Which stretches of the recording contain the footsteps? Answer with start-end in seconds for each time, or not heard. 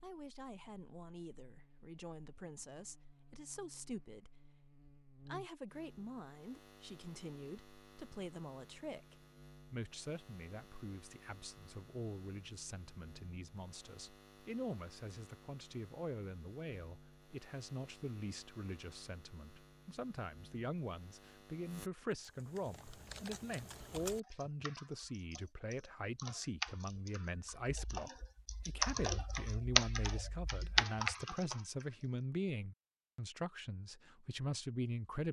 not heard.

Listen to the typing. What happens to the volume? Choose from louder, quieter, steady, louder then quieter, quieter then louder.
quieter then louder.